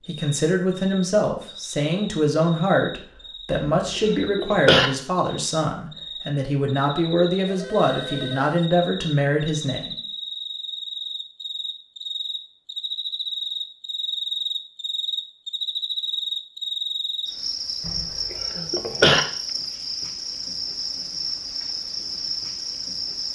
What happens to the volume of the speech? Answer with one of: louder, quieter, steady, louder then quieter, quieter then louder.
steady.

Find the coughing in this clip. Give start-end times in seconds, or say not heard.
3.8-4.9, 17.9-19.2.